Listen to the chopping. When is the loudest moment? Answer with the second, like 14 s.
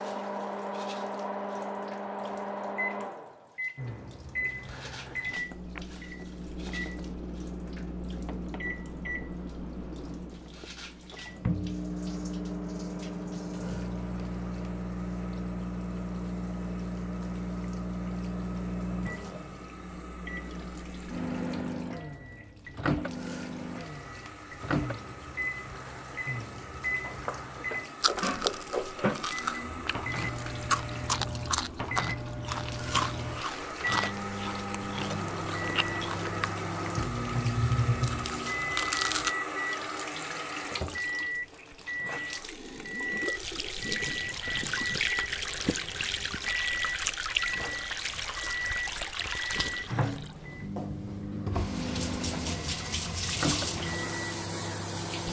29 s.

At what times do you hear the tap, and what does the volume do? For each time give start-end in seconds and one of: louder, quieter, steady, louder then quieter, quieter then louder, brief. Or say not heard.
0.0-55.2 louder.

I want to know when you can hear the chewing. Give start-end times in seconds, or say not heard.
28.0-39.4.